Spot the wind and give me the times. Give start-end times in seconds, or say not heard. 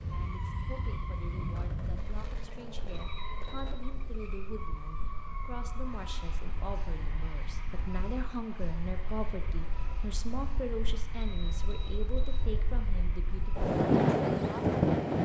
0.0-15.1.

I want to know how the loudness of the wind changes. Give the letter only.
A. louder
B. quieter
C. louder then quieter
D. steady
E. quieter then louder
E.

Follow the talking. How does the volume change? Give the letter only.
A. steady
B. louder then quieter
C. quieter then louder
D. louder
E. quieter
D.